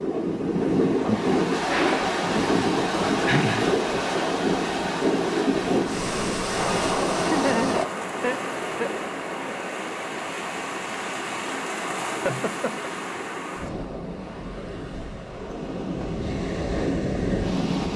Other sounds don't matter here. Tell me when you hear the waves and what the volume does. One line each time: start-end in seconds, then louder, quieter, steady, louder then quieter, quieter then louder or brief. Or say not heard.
0.0-17.9 quieter.